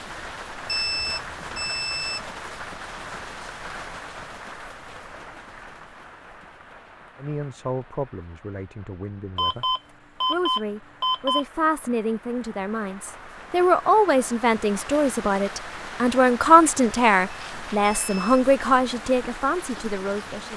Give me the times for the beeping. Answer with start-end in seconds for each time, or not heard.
0.7-2.2, 9.3-11.4, 17.3-18.4.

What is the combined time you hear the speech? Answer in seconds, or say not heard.
13 s.